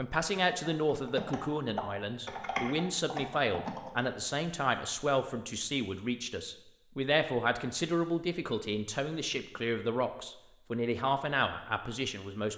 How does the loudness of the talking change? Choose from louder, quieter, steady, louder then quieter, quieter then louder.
steady.